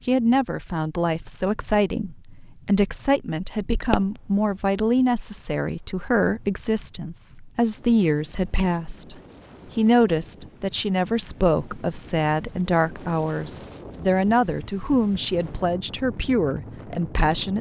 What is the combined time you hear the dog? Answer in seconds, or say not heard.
not heard.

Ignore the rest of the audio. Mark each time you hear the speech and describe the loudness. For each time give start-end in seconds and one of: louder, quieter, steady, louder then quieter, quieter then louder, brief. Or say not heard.
0.1-9.2 steady
9.8-17.5 steady.